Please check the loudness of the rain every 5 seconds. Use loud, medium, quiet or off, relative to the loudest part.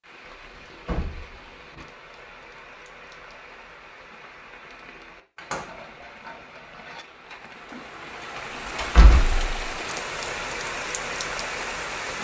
quiet, medium, loud.